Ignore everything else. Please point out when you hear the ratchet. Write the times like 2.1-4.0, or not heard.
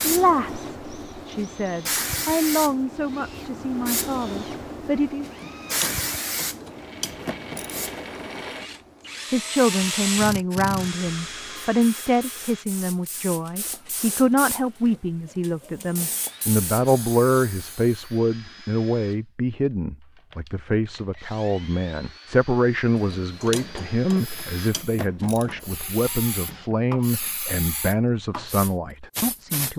5.2-8.0, 22.9-25.9.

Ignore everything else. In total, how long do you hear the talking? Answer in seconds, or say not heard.
26 s.